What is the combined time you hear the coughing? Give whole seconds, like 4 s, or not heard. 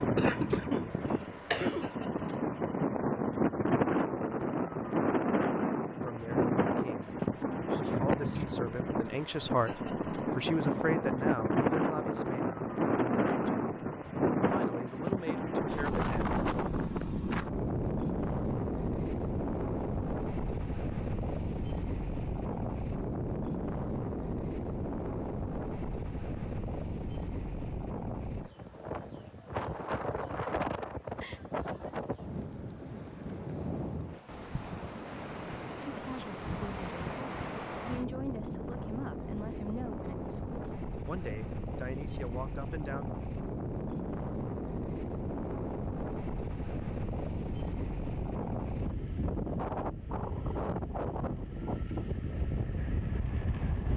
2 s.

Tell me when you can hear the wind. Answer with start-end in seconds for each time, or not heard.
0.0-53.9.